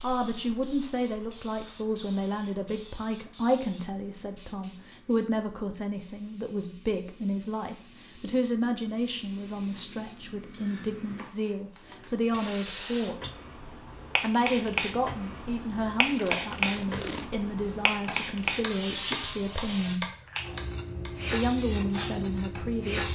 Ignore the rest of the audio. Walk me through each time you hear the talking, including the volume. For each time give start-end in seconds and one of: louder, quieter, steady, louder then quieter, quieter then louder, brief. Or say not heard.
0.0-13.3 steady
14.2-20.1 steady
21.3-23.0 brief.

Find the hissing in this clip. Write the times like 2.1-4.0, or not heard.
0.0-23.0.